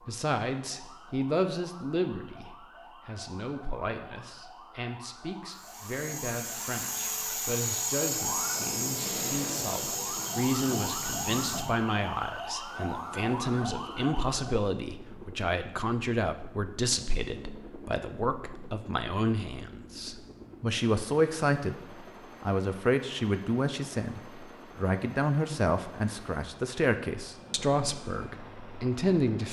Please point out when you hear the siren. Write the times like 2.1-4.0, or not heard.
0.0-14.7.